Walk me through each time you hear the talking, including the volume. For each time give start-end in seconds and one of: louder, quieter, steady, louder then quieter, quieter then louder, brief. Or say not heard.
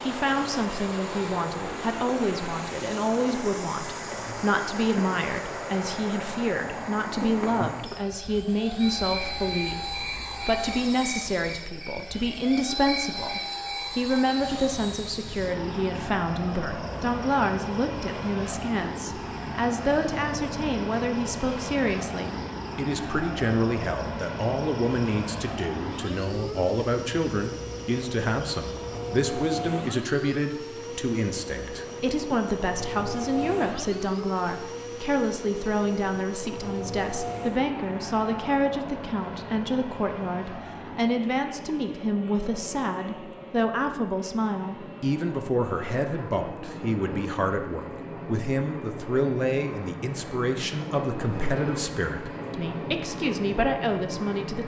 0.1-54.6 steady.